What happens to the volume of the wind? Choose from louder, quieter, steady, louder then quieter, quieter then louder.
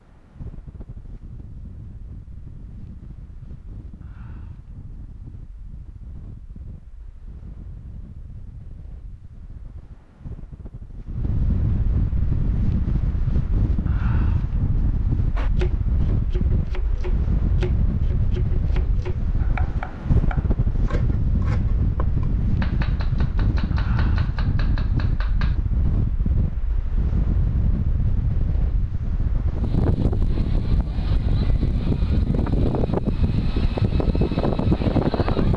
louder.